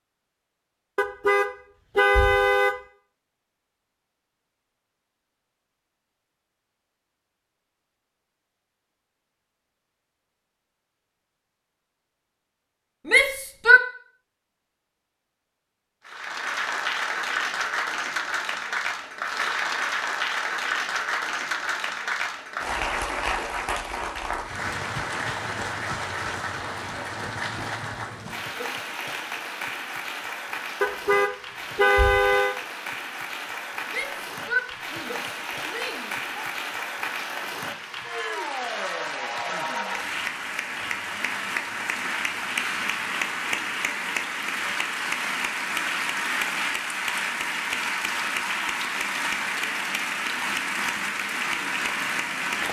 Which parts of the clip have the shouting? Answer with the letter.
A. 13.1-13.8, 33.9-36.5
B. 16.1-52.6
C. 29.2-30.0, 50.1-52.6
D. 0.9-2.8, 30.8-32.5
A.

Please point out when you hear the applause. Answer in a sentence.
You can hear the applause from 16.1 to 52.6 s.